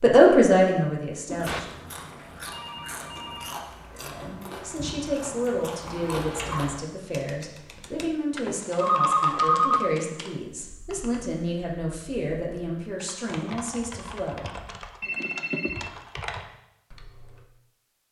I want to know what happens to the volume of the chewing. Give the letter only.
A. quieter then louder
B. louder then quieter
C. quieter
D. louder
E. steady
D.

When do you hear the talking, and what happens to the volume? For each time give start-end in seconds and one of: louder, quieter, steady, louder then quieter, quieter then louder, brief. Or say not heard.
0.0-1.8 brief
3.9-14.6 steady.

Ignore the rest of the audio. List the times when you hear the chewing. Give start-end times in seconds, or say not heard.
1.2-6.8.